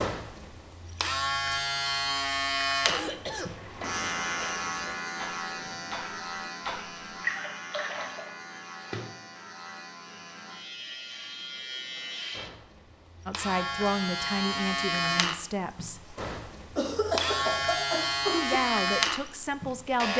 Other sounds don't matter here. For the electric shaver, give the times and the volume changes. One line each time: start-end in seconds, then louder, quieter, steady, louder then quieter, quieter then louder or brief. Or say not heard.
0.0-20.1 quieter then louder.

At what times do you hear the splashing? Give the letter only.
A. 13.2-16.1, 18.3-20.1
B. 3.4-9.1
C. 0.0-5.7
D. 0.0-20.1
B.